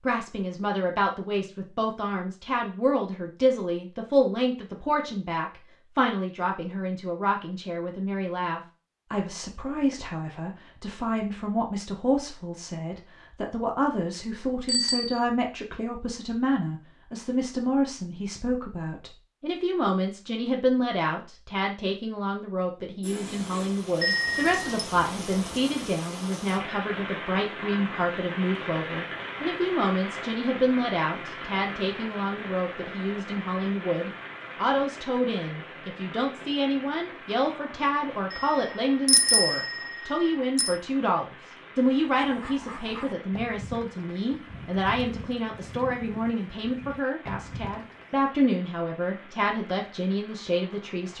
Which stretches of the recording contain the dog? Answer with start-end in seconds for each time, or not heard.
not heard.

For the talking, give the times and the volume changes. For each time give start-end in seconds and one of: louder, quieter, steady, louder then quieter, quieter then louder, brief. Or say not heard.
0.1-51.1 steady.